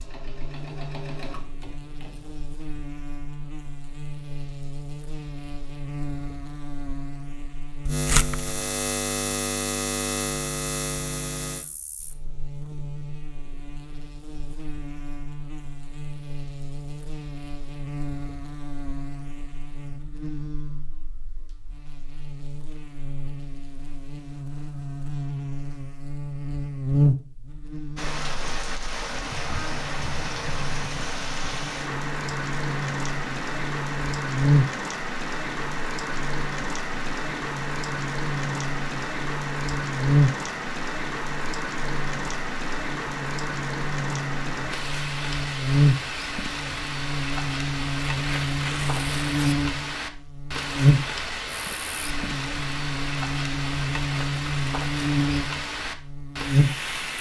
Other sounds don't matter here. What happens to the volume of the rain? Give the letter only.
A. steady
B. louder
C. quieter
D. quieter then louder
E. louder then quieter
A.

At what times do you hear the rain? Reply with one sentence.
The rain can be heard from 27.9 to 57.1 s.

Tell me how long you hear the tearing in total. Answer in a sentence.
You can hear the tearing for 2 seconds altogether.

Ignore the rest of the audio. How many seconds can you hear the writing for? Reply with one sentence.
You can't hear the writing here.